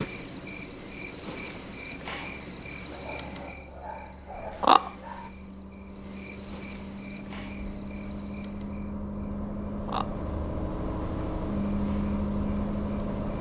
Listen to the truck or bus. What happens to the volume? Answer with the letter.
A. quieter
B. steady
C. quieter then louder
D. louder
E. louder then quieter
D.